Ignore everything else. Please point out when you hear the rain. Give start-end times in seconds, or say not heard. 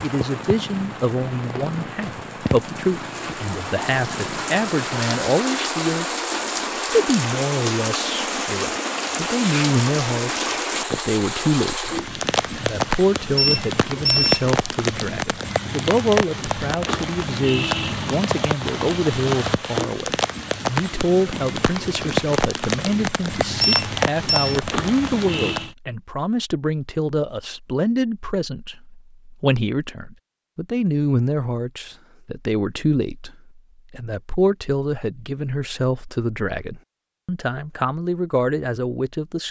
0.0-25.8.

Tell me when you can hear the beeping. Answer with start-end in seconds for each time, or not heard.
13.3-14.3, 23.6-24.6.